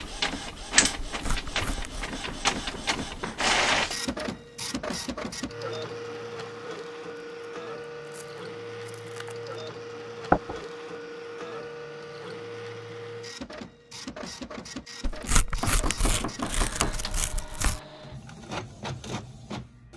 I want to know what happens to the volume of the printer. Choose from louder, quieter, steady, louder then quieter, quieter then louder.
quieter.